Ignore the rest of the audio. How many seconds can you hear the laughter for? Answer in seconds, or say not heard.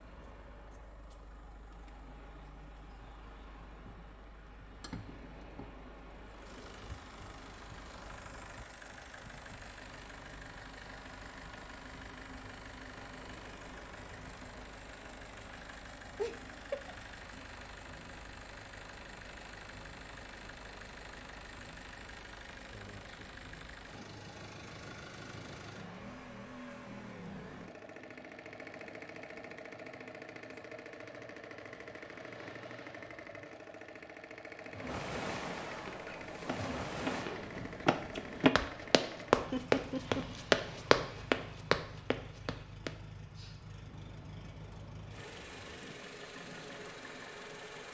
2 s.